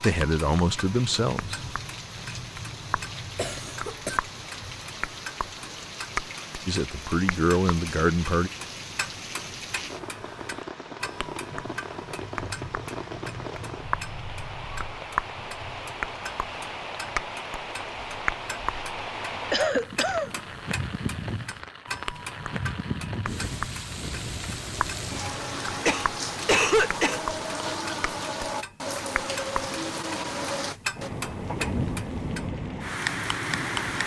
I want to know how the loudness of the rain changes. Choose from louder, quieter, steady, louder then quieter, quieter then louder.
louder.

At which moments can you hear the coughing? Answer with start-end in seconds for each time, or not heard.
3.4-4.2, 19.5-20.4, 25.9-27.8.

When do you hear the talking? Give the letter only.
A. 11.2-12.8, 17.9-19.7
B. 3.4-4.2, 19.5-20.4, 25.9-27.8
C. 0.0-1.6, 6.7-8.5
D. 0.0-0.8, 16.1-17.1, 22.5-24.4
C.